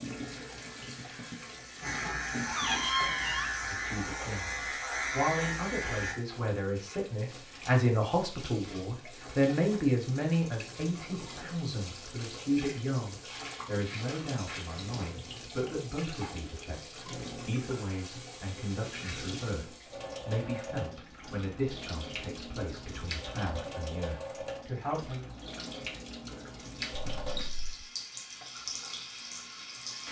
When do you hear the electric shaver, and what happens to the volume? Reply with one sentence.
The electric shaver can be heard from 0.0 to 6.2 s, getting louder.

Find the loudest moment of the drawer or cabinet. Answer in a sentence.
The volume of the drawer or cabinet peaks at 3 seconds.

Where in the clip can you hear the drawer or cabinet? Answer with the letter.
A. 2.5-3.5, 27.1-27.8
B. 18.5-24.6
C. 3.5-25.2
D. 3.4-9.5
A.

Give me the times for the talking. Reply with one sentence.
The talking can be heard from 3.5 to 25.2 s.